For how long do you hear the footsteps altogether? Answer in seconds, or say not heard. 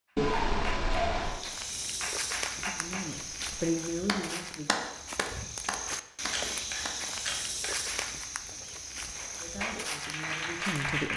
10 s.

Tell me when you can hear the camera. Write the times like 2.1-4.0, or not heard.
0.1-1.4, 6.3-7.8.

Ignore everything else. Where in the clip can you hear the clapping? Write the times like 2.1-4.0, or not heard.
0.5-7.0, 9.2-11.1.